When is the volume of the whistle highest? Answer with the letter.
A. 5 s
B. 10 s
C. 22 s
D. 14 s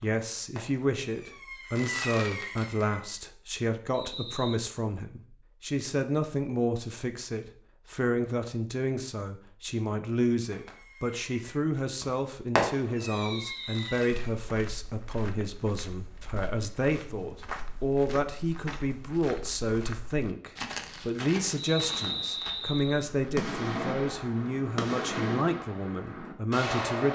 C.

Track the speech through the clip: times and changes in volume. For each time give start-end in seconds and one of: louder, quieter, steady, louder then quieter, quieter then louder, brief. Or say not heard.
0.0-27.1 steady.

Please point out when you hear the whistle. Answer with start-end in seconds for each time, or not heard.
3.9-4.6, 13.1-14.1, 21.6-23.1.